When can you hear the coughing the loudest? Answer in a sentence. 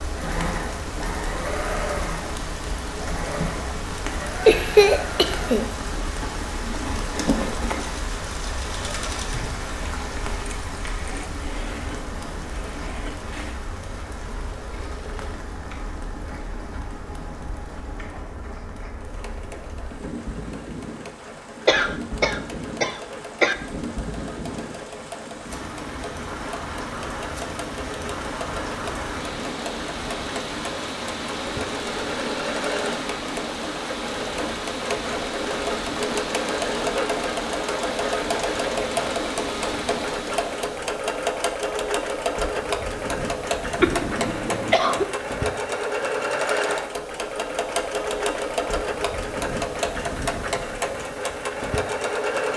The loudest moment of the coughing is at 5 seconds.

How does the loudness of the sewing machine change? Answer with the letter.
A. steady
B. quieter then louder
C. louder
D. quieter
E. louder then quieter
B.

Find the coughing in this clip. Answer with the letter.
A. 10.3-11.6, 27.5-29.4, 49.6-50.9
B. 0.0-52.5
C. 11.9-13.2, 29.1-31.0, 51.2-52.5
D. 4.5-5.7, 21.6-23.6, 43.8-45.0
D.